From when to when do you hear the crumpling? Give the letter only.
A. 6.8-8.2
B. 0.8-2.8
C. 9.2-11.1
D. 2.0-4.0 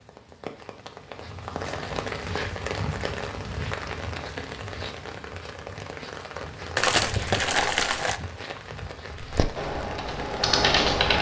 A.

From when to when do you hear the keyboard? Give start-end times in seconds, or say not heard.
9.2-11.1.